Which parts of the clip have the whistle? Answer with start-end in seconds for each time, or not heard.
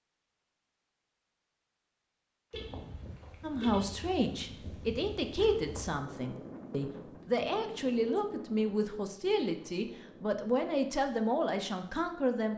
not heard.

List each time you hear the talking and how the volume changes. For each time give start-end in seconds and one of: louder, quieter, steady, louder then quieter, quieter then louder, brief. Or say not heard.
3.4-12.5 steady.